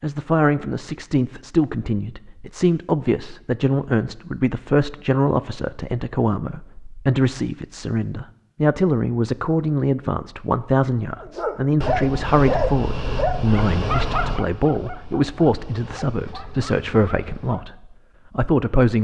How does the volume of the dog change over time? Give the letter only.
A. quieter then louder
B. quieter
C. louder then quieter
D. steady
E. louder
B.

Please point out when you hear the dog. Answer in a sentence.
The dog can be heard from 11.2 to 17.8 s.